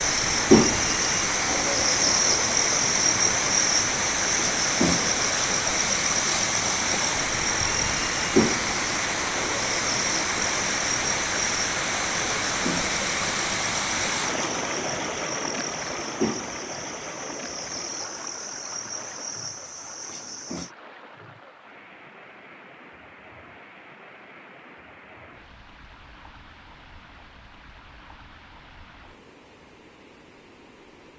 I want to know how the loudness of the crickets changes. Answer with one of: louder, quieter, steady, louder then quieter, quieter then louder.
quieter.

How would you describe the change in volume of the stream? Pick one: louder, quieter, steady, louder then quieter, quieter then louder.
quieter.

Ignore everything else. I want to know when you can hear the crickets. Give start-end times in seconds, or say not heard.
0.0-20.7.